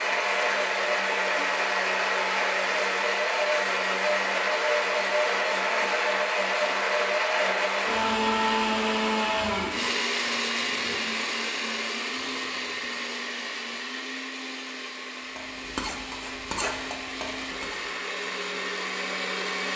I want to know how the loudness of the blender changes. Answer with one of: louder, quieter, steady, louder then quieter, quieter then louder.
quieter.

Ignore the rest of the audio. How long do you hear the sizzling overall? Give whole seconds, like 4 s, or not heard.
3 s.